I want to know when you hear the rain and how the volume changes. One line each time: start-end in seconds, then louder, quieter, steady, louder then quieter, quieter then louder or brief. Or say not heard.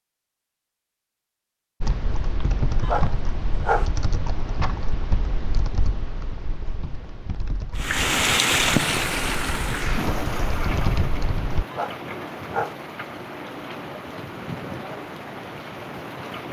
7.8-16.4 quieter.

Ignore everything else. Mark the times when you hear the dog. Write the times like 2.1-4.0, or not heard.
2.8-3.9, 11.7-12.8.